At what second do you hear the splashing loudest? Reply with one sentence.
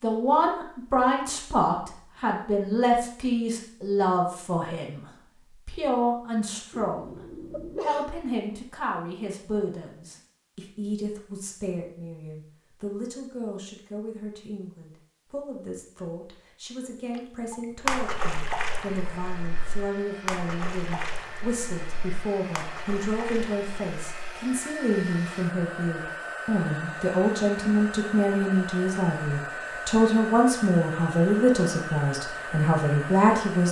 The loudest moment of the splashing is at 18 seconds.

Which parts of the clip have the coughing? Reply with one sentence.
The coughing can be heard from 6.7 to 8.1 s.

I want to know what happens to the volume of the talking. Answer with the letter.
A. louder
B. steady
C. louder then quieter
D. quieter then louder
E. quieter
D.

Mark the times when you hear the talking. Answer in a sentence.
The talking can be heard from 0.0 to 7.2 s and from 7.8 to 33.6 s.